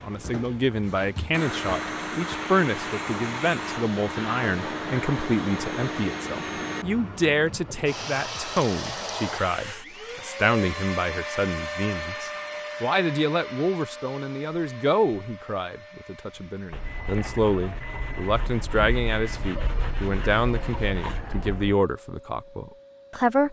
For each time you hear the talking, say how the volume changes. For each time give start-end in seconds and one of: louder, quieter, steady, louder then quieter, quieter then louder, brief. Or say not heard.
0.0-23.4 steady.